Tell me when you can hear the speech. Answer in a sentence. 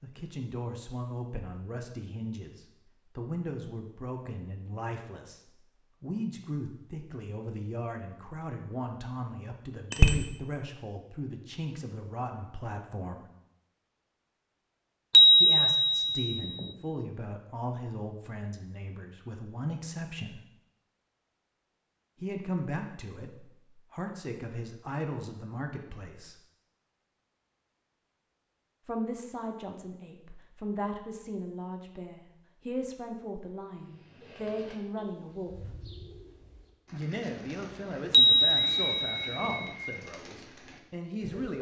You can hear the speech from 0.0 to 5.4 s, from 6.0 to 13.2 s, from 15.3 to 20.4 s, from 22.2 to 26.4 s, from 28.9 to 35.8 s and from 36.9 to 41.5 s.